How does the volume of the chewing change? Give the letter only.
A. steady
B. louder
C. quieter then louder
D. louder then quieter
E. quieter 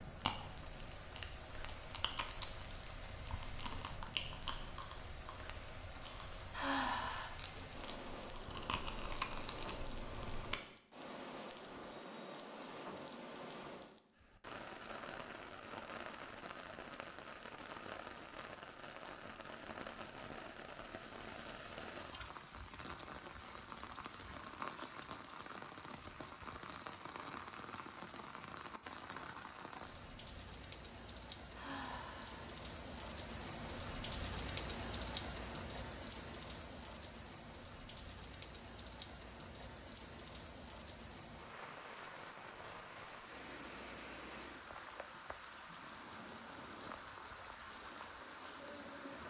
C.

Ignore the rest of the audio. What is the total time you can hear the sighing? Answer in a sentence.
The sighing can be heard for 2 seconds in total.